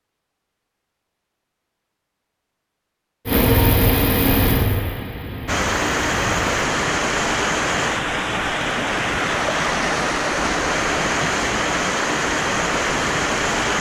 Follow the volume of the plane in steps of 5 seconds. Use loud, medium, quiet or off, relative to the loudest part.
loud, quiet, off.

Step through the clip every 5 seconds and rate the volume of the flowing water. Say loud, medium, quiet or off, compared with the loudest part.
off, loud, loud.